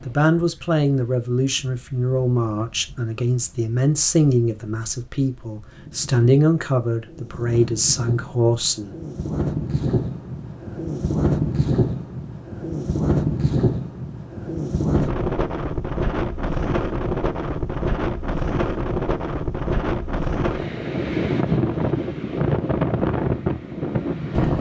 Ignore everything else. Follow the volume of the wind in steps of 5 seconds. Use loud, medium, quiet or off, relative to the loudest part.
quiet, medium, loud, loud, loud.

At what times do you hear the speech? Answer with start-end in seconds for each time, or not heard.
0.1-8.9.